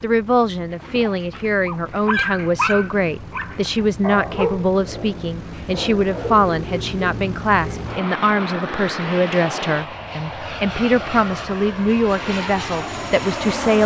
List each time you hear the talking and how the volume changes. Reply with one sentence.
You can hear the talking from 0.0 to 13.8 s, at a steady volume.